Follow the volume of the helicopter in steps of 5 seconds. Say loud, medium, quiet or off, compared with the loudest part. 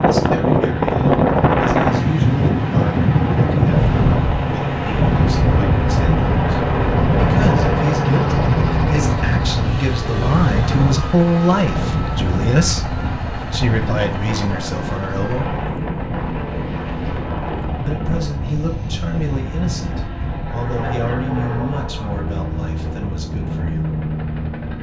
medium, loud, medium, medium, medium.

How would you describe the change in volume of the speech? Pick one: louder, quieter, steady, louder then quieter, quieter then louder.
louder then quieter.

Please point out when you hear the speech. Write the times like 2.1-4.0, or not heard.
0.0-15.6, 17.8-23.9.